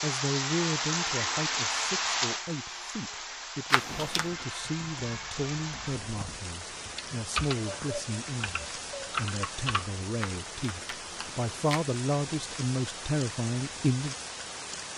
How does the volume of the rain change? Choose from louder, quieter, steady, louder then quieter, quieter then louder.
quieter.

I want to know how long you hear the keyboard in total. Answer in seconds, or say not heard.
6 s.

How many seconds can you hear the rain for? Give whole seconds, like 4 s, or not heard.
15 s.